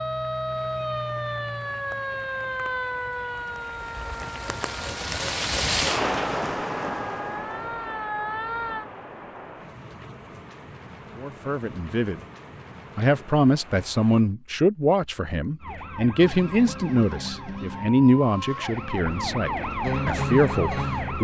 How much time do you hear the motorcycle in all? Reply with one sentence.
You can't hear the motorcycle here.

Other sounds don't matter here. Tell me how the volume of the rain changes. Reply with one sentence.
The loudness of the rain goes up, then down.